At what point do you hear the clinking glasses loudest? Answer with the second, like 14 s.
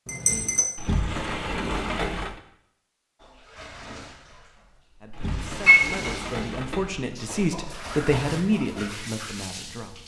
6 s.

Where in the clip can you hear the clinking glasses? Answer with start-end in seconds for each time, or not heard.
0.1-0.7, 5.7-6.2.